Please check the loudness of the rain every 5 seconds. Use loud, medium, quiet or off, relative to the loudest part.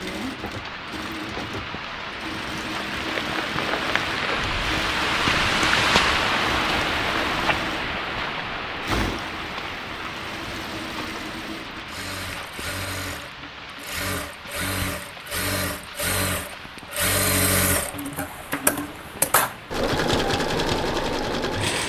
medium, loud, quiet, quiet, off.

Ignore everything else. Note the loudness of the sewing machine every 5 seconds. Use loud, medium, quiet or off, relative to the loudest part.
medium, medium, medium, loud, loud.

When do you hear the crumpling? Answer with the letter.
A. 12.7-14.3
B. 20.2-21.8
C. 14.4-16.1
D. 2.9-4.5
D.